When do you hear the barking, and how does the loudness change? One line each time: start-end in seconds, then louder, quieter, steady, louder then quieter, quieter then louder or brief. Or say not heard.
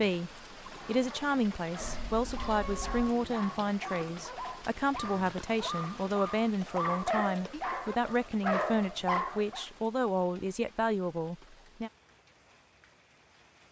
0.8-9.7 louder.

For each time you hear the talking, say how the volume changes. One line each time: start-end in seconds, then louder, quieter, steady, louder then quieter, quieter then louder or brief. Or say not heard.
0.0-11.9 steady.